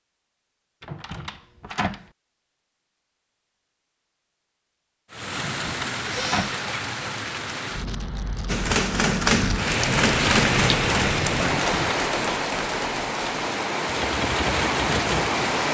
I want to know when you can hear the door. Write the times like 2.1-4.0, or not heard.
0.8-2.0, 5.3-6.6, 11.6-12.1.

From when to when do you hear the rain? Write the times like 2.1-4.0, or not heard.
5.1-15.6.